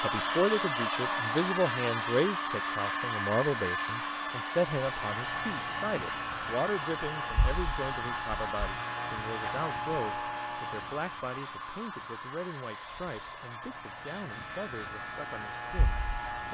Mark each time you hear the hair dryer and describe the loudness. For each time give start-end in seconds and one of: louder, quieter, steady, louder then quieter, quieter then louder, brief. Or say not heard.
0.0-16.4 quieter.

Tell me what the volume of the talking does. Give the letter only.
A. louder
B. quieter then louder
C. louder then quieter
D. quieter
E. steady
D.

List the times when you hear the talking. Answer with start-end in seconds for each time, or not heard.
0.0-16.4.